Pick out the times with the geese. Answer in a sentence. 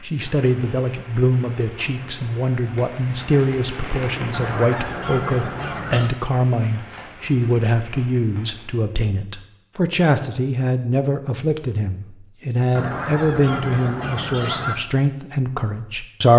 The geese can be heard from 4.3 to 6.1 s and from 12.8 to 14.8 s.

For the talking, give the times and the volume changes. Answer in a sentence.
You can hear the talking from 0.0 to 16.3 s, at a steady volume.